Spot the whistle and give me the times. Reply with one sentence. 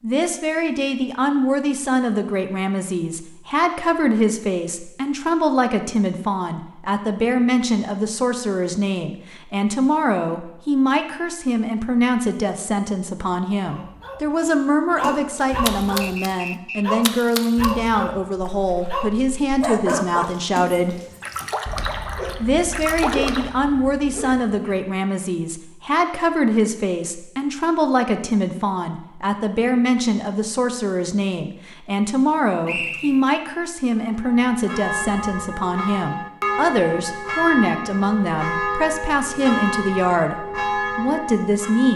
You can hear the whistle from 16.0 to 16.9 s and from 32.6 to 33.4 s.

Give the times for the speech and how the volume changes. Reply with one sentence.
The speech can be heard from 0.0 to 21.0 s, at a steady volume; and from 22.4 to 41.9 s, at a steady volume.